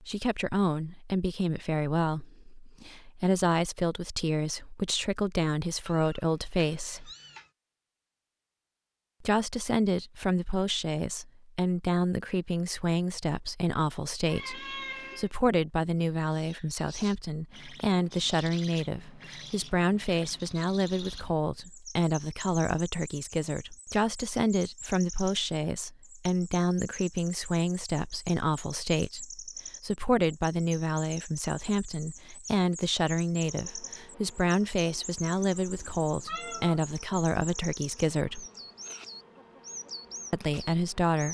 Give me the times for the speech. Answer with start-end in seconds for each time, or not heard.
0.0-7.1, 9.2-38.5, 40.3-41.2.